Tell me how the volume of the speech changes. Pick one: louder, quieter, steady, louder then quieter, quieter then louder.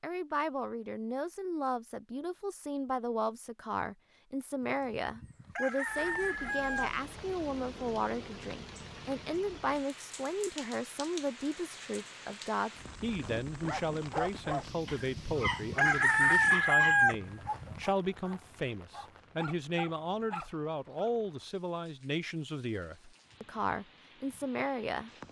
steady.